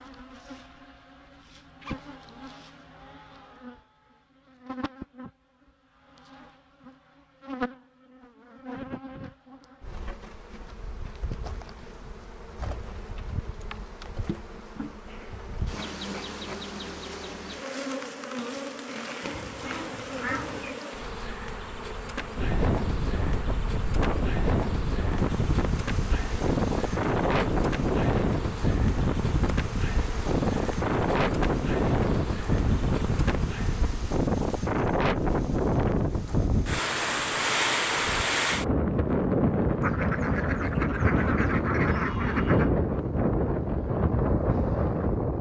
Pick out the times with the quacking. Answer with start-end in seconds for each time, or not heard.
19.2-20.8, 39.8-42.7.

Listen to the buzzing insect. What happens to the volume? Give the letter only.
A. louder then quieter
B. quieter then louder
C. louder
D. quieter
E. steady
C.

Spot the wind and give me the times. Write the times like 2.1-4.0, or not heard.
22.4-45.3.